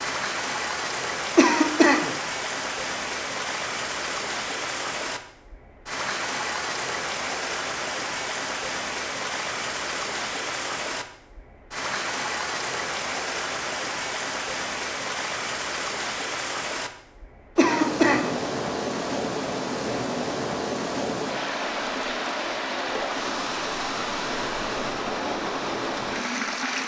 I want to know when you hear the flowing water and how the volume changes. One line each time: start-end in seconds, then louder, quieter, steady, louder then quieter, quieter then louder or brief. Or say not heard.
0.0-26.8 steady.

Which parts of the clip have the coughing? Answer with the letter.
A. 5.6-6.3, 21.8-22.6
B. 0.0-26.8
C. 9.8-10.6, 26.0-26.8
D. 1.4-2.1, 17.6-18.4
D.